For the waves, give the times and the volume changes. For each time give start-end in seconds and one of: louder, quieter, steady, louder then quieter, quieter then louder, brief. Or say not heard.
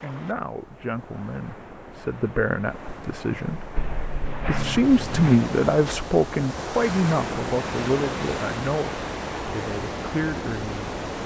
0.0-11.2 louder.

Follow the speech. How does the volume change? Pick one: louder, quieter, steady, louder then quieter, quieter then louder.
louder then quieter.